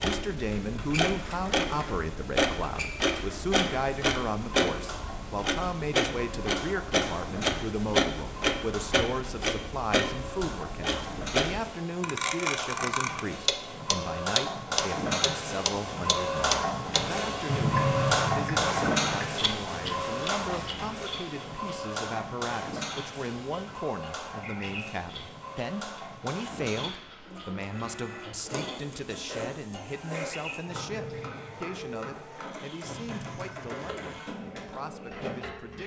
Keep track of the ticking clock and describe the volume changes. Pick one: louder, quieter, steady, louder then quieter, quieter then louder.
quieter.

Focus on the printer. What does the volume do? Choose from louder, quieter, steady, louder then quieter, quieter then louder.
louder then quieter.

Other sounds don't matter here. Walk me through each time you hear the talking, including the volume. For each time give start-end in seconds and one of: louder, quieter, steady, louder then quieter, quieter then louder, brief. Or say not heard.
0.0-35.8 quieter.